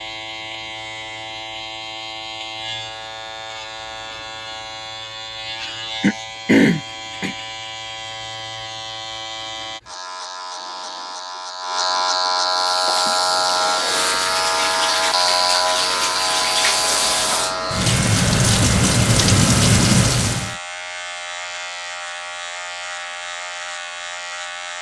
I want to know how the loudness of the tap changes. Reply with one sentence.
The volume of the tap goes up.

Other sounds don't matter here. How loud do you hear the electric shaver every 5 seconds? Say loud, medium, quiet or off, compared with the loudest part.
medium, medium, loud, loud, medium.